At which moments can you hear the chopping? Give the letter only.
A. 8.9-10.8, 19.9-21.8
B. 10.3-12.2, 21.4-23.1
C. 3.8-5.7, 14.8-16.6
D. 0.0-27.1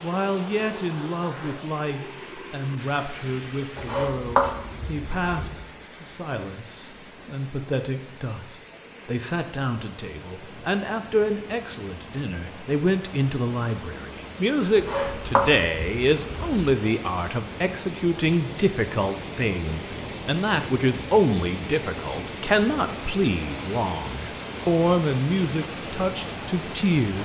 C.